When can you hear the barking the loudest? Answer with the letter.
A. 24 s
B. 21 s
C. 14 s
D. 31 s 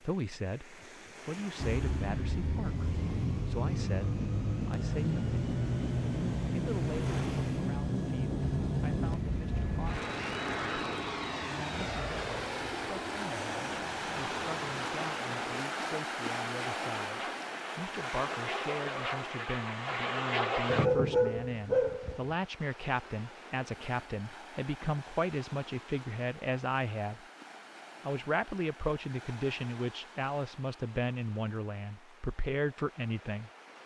B.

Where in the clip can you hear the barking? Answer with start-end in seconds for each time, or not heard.
20.6-22.4.